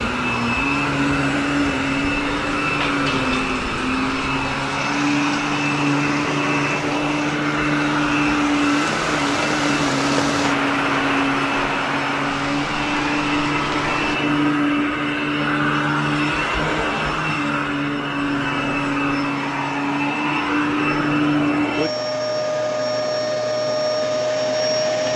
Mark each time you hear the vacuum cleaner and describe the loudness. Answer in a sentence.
You can hear the vacuum cleaner from 0.0 to 25.1 s, at a steady volume.